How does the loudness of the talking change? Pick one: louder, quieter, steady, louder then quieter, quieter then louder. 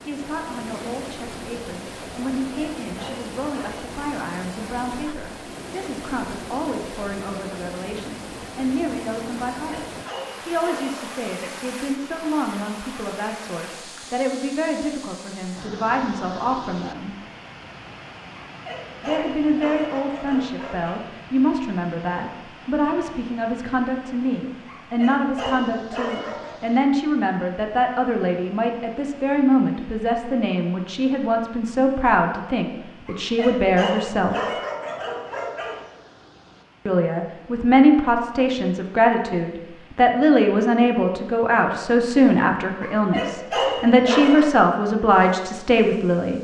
louder.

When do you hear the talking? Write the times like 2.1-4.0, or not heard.
0.1-9.8, 10.4-17.1, 19.0-34.4, 36.9-46.3.